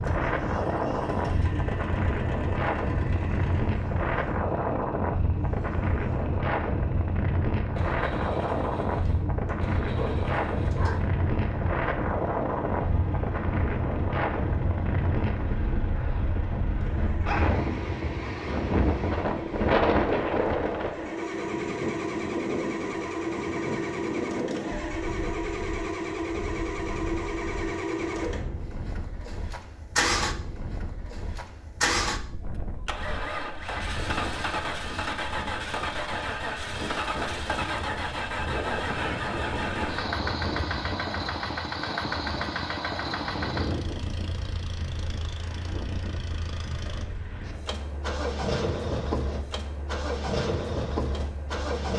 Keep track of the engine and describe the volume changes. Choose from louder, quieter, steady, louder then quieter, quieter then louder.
louder.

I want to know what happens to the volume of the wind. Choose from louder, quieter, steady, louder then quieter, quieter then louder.
quieter.